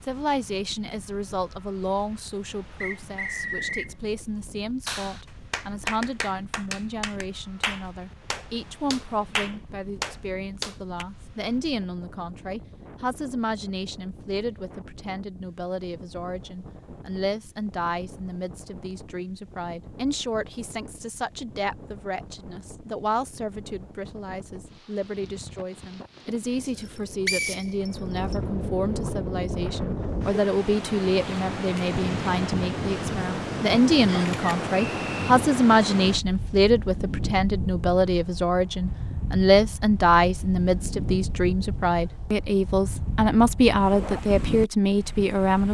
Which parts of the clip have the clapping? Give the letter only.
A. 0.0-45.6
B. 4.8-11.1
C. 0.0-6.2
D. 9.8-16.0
B.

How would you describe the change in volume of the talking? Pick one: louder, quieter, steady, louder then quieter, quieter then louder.
louder.